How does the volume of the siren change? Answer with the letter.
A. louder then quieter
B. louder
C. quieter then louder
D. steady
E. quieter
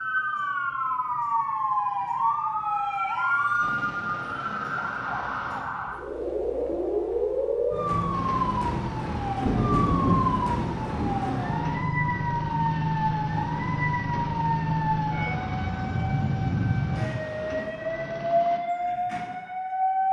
D.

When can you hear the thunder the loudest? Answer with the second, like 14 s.
10 s.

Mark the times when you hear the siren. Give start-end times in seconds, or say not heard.
0.0-20.0.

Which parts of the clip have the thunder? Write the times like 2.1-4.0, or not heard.
9.4-11.3.